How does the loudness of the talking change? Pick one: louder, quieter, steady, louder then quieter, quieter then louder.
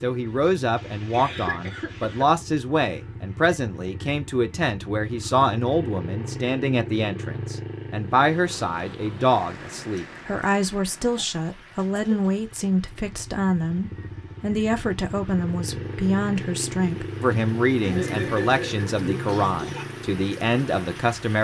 steady.